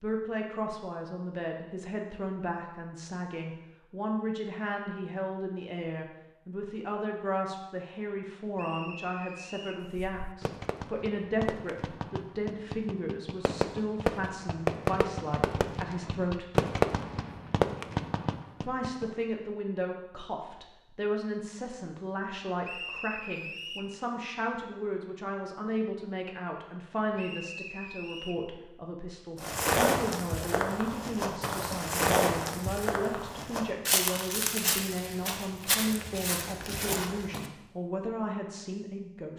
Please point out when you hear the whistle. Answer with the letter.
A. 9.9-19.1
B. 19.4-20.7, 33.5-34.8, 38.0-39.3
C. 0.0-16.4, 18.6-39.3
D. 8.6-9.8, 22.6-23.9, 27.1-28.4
D.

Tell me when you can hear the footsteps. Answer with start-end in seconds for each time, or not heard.
29.4-37.5.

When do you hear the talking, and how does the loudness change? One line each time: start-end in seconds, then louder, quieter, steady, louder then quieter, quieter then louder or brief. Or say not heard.
0.0-16.4 steady
18.6-39.3 steady.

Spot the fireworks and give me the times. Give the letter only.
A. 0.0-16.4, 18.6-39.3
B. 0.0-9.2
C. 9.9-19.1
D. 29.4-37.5
C.